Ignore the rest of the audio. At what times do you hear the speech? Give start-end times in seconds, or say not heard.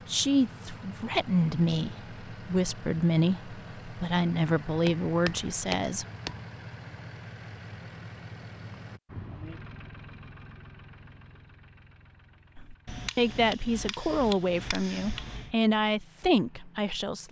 0.1-6.0, 12.6-17.2.